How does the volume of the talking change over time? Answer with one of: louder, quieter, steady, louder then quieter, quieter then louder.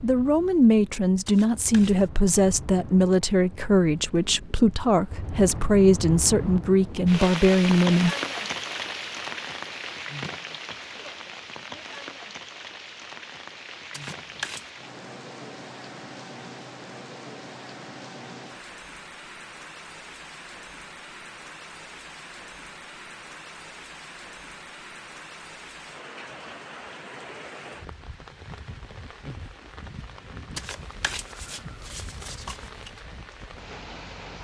steady.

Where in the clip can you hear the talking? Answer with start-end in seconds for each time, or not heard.
0.0-8.2.